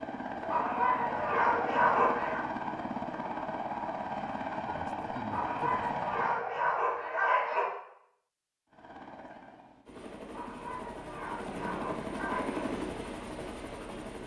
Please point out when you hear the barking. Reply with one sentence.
The barking can be heard from 0.5 to 2.4 s, from 5.3 to 7.7 s and from 10.3 to 12.7 s.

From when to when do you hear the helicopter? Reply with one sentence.
You can hear the helicopter from 0.0 to 6.4 s and from 8.7 to 14.2 s.